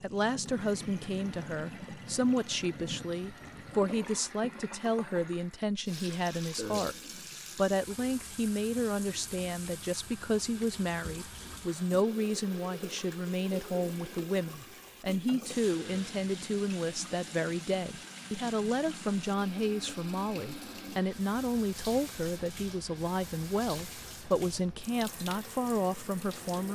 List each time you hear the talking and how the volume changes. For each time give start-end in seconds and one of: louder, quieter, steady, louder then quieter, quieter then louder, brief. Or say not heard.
0.0-7.0 steady
7.5-26.7 steady.